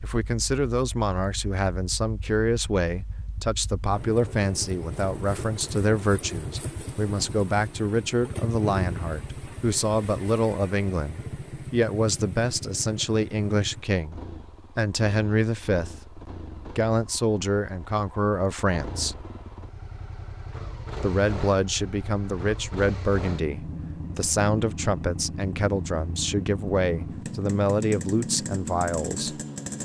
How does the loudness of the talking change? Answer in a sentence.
The volume of the talking stays about the same.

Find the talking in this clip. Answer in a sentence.
The talking can be heard from 0.0 to 19.1 s and from 21.0 to 29.4 s.